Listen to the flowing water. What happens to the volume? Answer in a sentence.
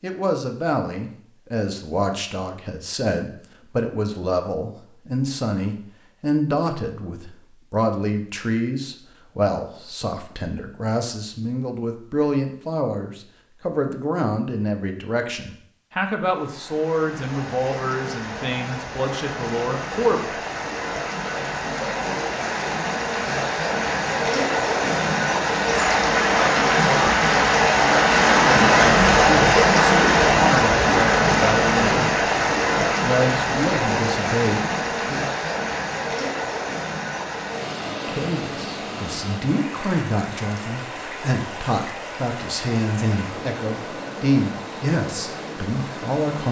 The volume of the flowing water goes up, then down.